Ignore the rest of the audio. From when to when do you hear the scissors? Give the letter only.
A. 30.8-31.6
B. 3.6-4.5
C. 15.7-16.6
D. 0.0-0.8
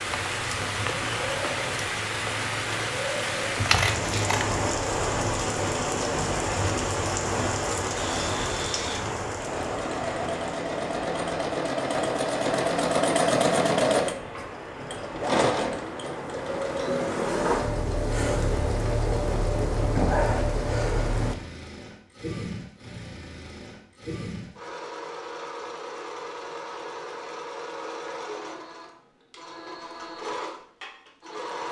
B.